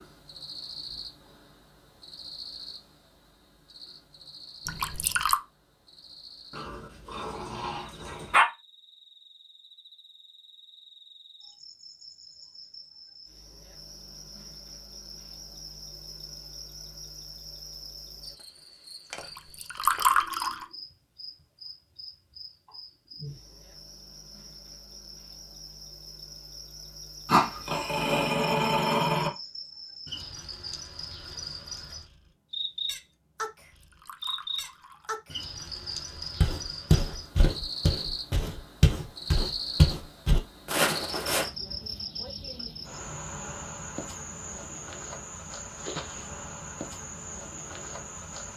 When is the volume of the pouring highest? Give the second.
20 s.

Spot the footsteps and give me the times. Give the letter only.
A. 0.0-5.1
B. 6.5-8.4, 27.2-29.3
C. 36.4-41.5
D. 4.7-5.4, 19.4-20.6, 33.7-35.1
C.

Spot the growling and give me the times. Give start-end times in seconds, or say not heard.
6.5-8.4, 27.2-29.3.